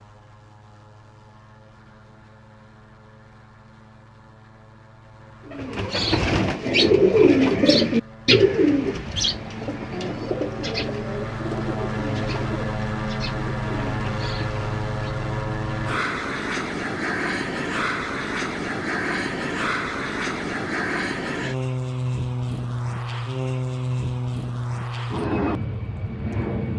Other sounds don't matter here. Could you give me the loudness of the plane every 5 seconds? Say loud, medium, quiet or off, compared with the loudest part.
quiet, quiet, loud, loud, loud, loud.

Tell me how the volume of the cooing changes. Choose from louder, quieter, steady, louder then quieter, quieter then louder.
quieter.